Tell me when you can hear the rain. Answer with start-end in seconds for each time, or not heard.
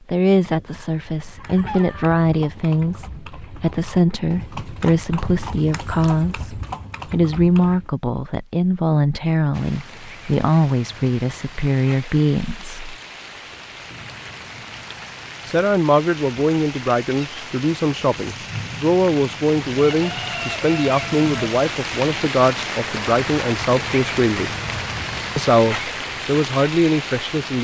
9.5-27.5.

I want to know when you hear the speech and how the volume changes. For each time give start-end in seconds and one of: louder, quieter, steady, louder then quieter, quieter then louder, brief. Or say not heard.
0.1-12.9 steady
15.4-24.5 steady
25.4-27.5 brief.